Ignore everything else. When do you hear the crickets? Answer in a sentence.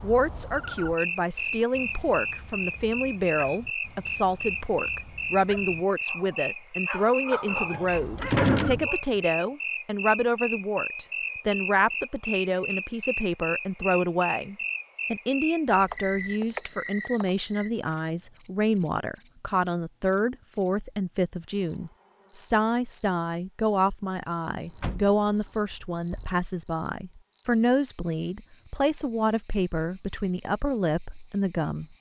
You can hear the crickets from 0.0 to 31.9 s.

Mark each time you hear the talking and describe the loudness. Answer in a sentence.
You can hear the talking from 0.0 to 31.9 s, at a steady volume.